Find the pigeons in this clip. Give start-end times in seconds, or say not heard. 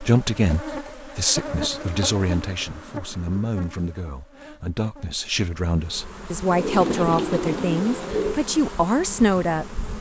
1.4-3.5, 6.5-8.4.